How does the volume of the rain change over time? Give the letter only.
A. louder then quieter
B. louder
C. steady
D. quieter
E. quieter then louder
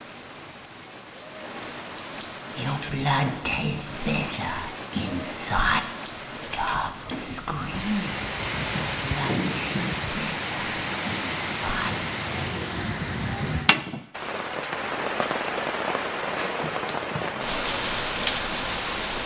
B.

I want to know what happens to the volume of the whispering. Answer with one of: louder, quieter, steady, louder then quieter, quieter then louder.
quieter.